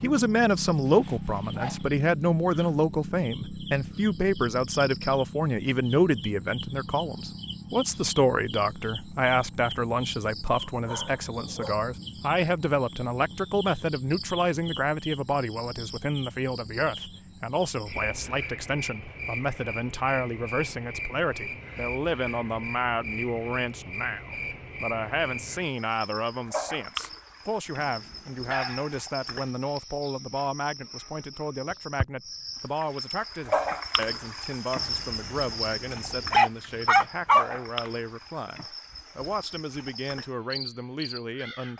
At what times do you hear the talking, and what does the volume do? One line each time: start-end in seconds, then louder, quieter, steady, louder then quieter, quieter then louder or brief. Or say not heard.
0.0-41.7 quieter.